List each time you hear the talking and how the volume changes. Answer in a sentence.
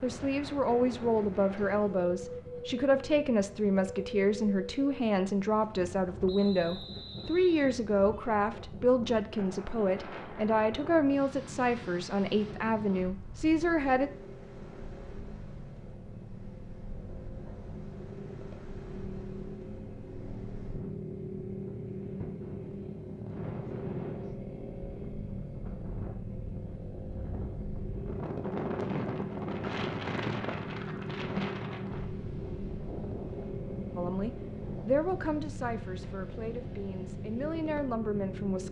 You can hear the talking from 0.0 to 14.1 s, at a steady volume; and from 34.0 to 38.6 s, getting quieter then louder.